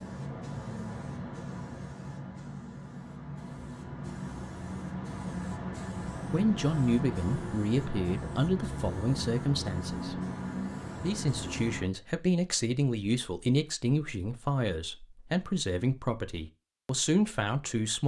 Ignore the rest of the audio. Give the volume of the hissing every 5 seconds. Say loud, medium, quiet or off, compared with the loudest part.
loud, loud, loud, off.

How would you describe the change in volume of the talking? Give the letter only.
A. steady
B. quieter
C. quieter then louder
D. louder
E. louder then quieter
A.